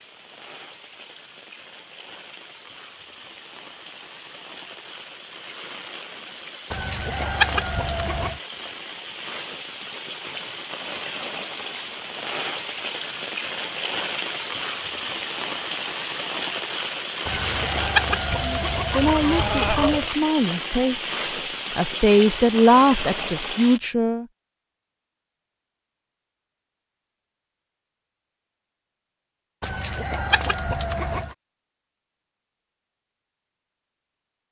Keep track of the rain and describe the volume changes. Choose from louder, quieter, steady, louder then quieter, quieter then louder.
louder.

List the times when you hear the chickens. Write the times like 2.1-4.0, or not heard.
6.7-8.4, 17.2-20.1, 29.6-31.4.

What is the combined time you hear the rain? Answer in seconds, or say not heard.
24 s.